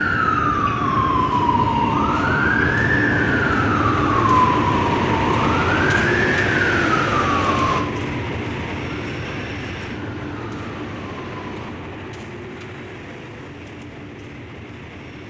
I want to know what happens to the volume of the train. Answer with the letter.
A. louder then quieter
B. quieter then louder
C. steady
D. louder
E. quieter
E.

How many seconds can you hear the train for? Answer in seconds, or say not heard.
15 s.